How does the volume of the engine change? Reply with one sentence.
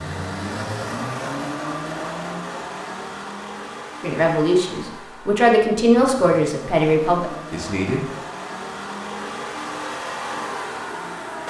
The loudness of the engine goes down, then up.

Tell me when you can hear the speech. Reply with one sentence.
The speech can be heard from 4.0 to 8.1 s.